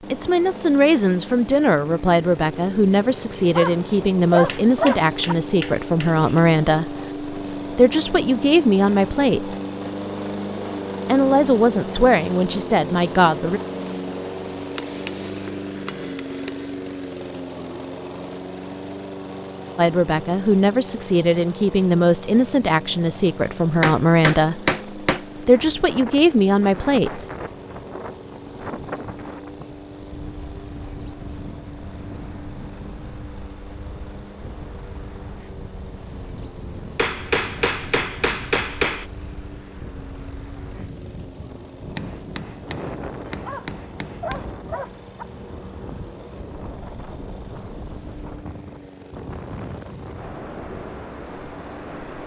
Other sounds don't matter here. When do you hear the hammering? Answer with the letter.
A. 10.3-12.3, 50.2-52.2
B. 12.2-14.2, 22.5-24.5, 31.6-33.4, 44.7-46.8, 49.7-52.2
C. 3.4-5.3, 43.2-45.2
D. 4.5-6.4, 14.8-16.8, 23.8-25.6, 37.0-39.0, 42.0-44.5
D.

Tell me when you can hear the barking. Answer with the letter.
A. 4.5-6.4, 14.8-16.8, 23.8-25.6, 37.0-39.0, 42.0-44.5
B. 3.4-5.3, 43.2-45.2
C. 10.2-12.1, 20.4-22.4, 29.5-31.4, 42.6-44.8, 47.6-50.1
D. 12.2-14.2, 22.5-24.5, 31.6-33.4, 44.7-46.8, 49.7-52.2
B.